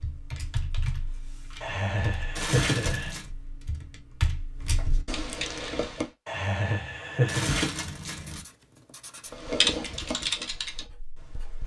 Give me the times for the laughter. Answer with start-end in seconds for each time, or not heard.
1.6-3.1, 6.2-7.5.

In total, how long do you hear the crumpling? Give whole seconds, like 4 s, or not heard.
2 s.